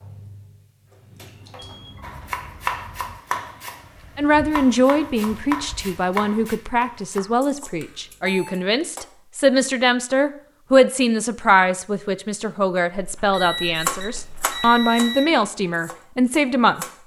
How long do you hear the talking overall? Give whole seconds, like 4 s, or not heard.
13 s.